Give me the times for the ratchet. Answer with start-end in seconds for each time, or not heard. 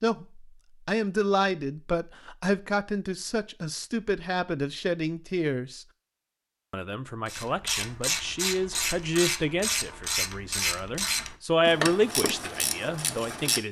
7.2-13.6.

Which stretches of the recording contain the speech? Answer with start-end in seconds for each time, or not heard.
0.0-5.8, 6.7-13.6.